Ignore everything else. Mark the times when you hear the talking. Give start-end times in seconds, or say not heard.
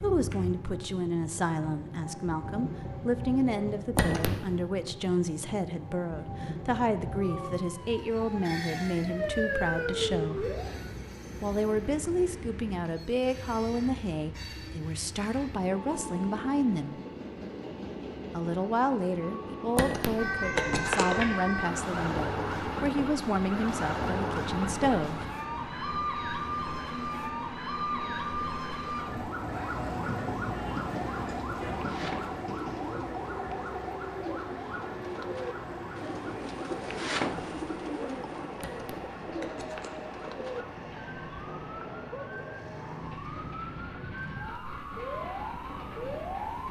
0.0-10.6, 11.4-16.9, 18.3-25.2.